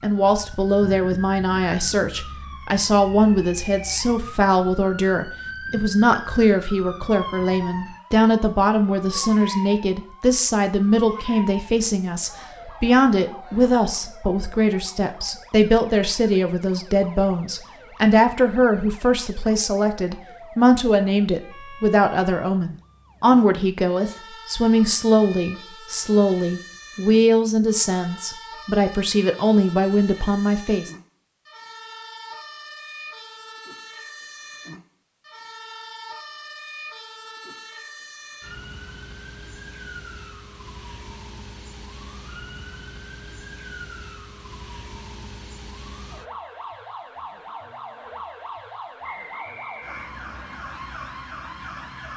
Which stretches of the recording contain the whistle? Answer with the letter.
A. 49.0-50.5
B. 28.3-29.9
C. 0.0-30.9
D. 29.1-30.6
A.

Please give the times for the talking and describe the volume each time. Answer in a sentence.
You can hear the talking from 0.0 to 30.9 s, at a steady volume.